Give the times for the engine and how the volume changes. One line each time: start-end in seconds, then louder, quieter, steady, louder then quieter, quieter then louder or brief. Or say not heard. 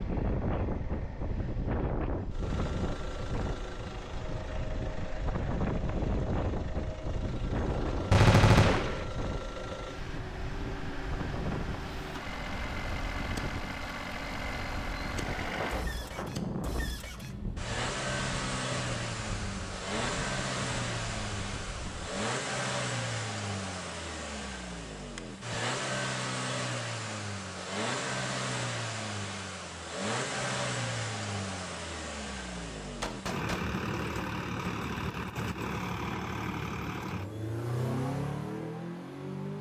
0.0-39.5 louder.